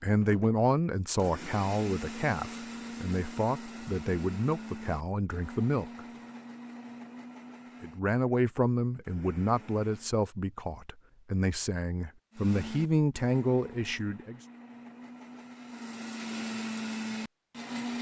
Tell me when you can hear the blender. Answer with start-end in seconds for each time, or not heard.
0.0-10.2, 12.3-17.9.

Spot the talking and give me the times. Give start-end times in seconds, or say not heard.
0.0-6.0, 7.8-14.4.